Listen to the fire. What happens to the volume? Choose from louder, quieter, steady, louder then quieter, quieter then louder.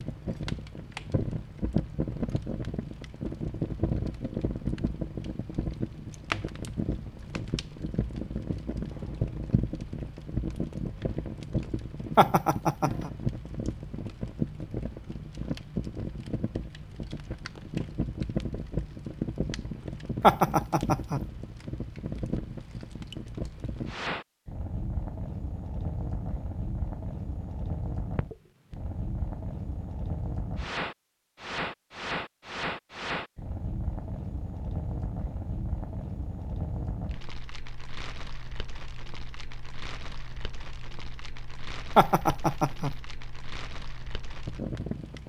quieter.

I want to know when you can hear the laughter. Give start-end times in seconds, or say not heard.
12.2-13.1, 20.2-21.2, 42.0-42.9.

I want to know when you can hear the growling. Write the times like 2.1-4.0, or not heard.
not heard.